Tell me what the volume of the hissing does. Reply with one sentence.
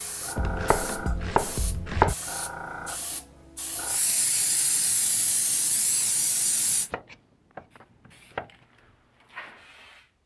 The volume of the hissing goes up, then down.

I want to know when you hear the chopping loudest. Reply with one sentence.
The volume of the chopping peaks at 2 seconds.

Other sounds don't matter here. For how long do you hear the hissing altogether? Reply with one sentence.
The hissing can be heard for 10 seconds in total.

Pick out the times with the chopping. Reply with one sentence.
You can hear the chopping from 0.3 to 2.1 s and from 6.9 to 8.7 s.